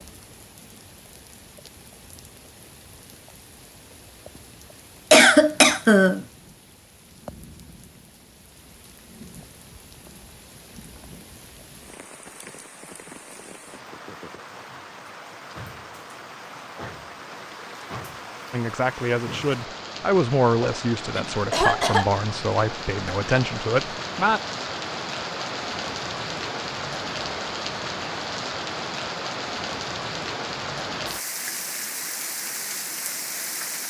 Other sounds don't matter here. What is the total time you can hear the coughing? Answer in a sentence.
The coughing can be heard for 3 seconds in total.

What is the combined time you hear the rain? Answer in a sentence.
The rain can be heard for 34 seconds in total.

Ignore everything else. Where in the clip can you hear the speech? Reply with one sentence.
The speech can be heard from 18.5 to 24.4 s.